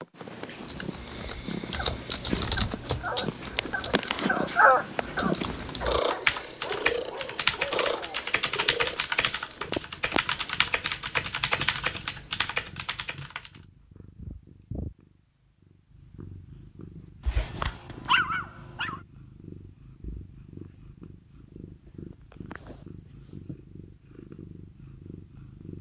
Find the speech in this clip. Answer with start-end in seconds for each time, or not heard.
not heard.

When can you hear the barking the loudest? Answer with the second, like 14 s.
5 s.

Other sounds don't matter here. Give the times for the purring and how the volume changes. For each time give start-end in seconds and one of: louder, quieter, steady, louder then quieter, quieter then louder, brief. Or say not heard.
0.0-25.7 quieter.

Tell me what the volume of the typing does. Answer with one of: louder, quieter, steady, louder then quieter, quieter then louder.
quieter then louder.